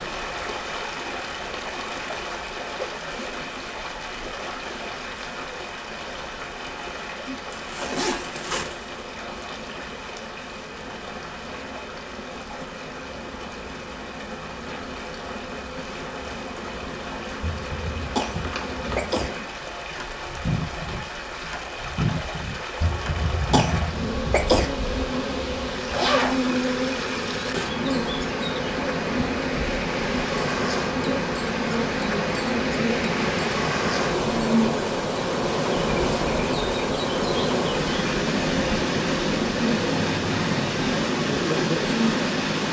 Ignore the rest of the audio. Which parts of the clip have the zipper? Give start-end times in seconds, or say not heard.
7.5-8.8, 25.9-26.4.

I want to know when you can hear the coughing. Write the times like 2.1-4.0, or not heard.
17.4-19.3, 22.8-24.7.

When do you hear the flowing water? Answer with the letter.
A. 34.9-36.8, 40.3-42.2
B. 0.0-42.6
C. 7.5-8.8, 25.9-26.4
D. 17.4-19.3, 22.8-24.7
B.